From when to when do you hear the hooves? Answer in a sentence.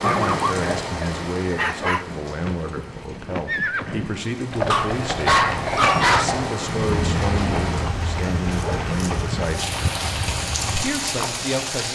You can hear the hooves from 2.2 to 11.3 s.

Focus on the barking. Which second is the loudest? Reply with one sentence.
The loudest moment of the barking is at 6 seconds.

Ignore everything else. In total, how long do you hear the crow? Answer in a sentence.
You can't hear the crow here.